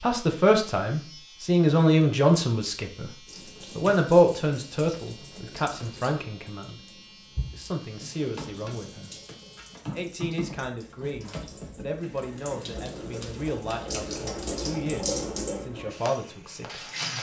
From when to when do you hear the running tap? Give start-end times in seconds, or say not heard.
3.2-17.1.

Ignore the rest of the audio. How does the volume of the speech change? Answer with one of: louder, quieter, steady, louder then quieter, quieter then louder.
quieter.